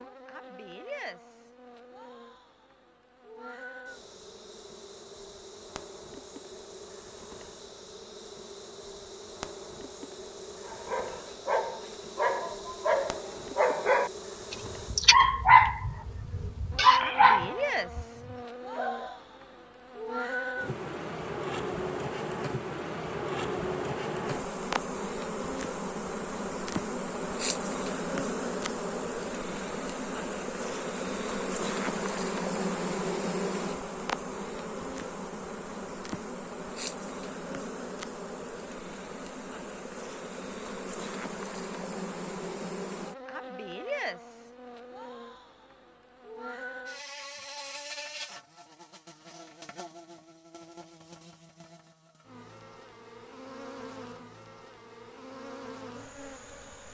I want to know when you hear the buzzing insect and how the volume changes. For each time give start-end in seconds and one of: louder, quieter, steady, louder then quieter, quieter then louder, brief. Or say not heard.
0.0-56.8 louder then quieter.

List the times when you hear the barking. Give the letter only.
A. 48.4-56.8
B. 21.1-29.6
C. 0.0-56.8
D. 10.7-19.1
D.